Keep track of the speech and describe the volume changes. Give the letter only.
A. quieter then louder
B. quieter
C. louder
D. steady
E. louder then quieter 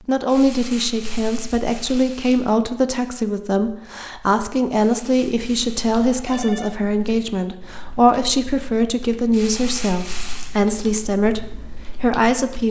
D.